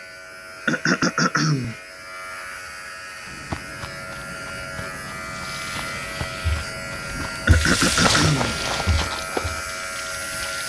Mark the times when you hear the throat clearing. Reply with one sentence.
You can hear the throat clearing from 0.7 to 1.8 s and from 7.5 to 8.6 s.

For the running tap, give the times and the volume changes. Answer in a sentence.
You can hear the running tap from 5.2 to 10.6 s, getting louder then quieter.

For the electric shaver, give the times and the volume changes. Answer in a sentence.
You can hear the electric shaver from 0.0 to 10.6 s, getting louder.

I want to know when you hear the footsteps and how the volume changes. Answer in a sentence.
You can hear the footsteps from 3.2 to 9.7 s, getting louder.